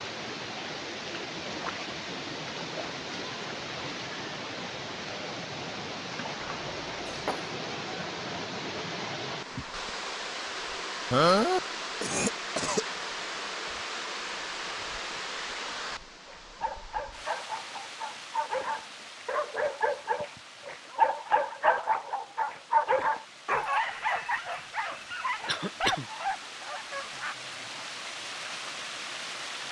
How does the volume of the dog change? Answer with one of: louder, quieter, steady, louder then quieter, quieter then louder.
louder then quieter.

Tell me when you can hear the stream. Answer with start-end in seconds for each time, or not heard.
0.0-29.6.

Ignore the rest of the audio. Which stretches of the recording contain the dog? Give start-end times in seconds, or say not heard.
16.2-27.4.